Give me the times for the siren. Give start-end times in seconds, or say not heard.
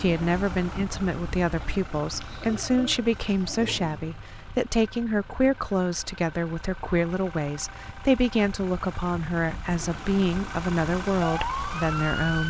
9.7-12.4.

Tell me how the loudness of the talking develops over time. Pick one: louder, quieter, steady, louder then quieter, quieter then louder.
steady.